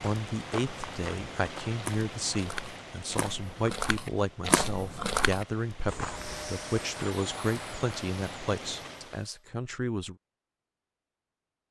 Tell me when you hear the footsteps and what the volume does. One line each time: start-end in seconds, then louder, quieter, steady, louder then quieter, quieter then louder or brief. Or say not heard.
0.0-6.6 louder.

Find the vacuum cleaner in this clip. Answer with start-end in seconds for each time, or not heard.
5.9-9.4.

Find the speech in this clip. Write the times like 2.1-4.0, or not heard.
0.0-10.2.